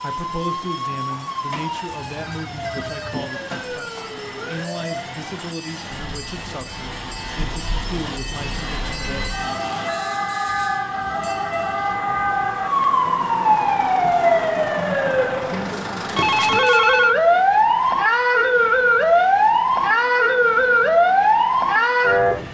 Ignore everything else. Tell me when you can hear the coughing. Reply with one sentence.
You can't hear the coughing here.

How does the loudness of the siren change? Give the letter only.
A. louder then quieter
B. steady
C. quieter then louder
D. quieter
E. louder
C.